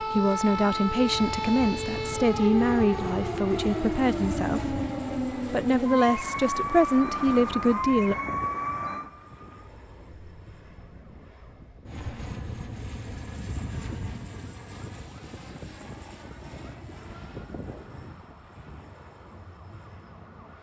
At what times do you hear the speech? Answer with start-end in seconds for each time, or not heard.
0.0-4.8, 5.5-8.2.